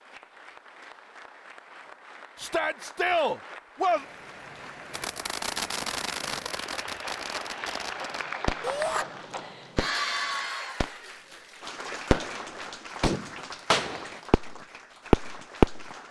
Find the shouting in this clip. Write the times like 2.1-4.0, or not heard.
2.4-4.0, 8.6-9.1.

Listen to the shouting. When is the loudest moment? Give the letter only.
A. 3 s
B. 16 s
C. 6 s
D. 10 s
A.